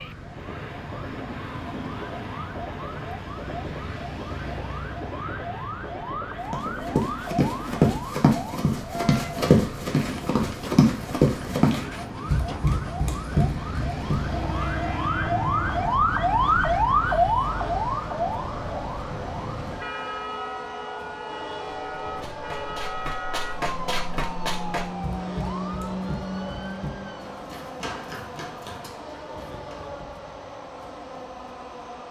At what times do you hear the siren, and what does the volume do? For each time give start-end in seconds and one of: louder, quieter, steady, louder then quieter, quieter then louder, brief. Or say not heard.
0.0-27.6 louder then quieter.